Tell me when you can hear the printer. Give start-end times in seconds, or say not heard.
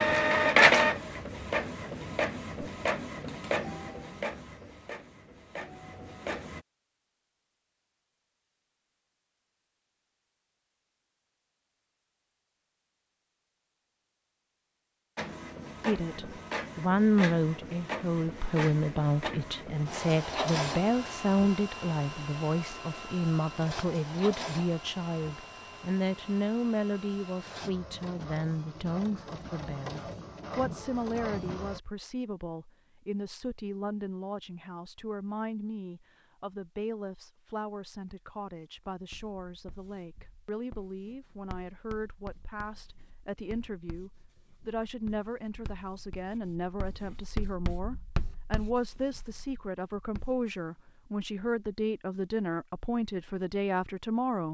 0.0-6.6, 15.2-31.8.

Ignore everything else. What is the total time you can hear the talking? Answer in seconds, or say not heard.
39 s.